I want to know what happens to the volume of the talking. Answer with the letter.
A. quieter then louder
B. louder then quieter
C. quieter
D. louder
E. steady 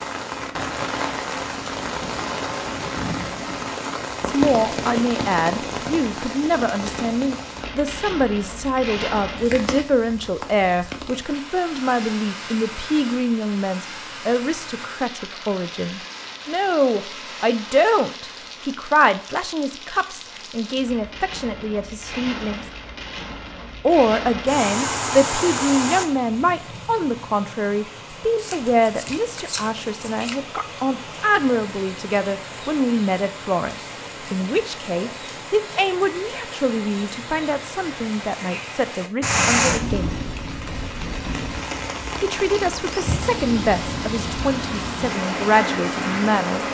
E.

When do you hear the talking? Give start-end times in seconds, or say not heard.
4.2-22.6, 23.8-40.1, 42.2-46.6.